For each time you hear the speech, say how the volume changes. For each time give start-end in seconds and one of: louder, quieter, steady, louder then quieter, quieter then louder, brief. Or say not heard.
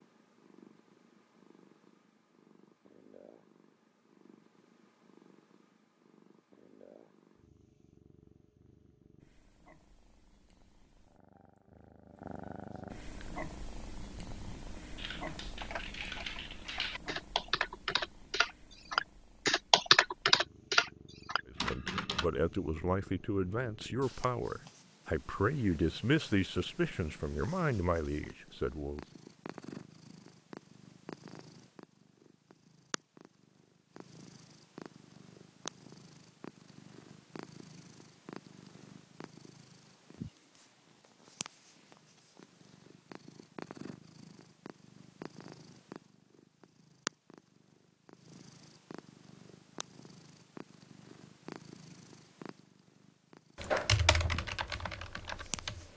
21.4-29.1 steady.